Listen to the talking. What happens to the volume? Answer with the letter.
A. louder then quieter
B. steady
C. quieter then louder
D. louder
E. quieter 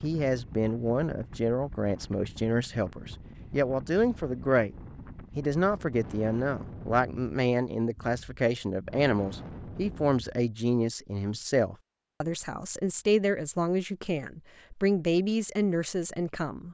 B.